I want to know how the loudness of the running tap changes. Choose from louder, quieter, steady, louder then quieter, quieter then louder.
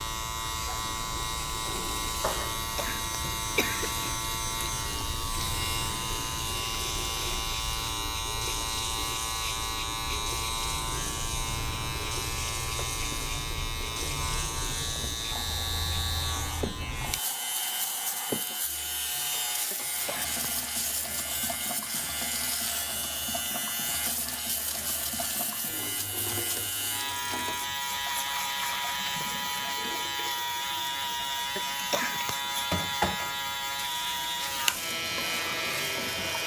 steady.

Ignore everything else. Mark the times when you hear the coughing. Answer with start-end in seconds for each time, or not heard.
2.4-4.0, 19.7-20.5, 31.6-32.4.